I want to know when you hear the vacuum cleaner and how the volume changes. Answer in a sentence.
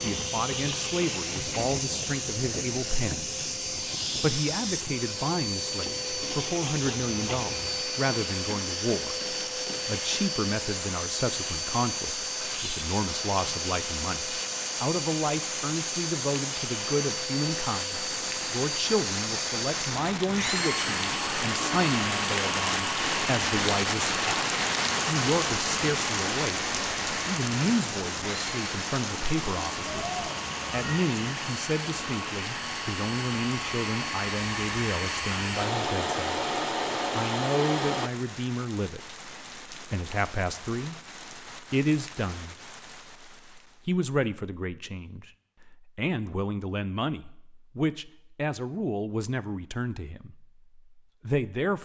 The vacuum cleaner can be heard from 0.0 to 38.1 s, at a steady volume.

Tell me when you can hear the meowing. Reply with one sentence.
The meowing can be heard from 29.9 to 31.1 s.